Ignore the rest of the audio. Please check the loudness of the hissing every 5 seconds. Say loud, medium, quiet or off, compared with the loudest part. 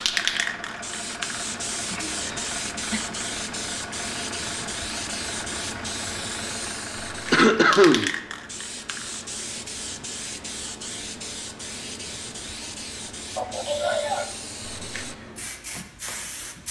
loud, loud, medium, medium.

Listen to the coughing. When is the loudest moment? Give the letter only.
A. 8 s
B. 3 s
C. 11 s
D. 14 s
A.